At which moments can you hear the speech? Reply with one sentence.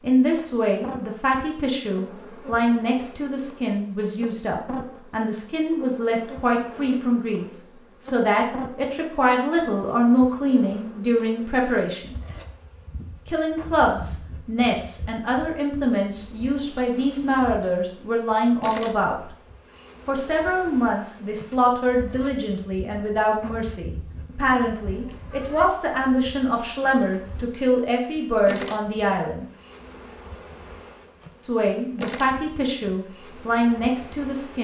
The speech can be heard from 0.0 to 12.2 s, from 13.2 to 19.2 s, from 20.1 to 29.4 s and from 31.4 to 34.5 s.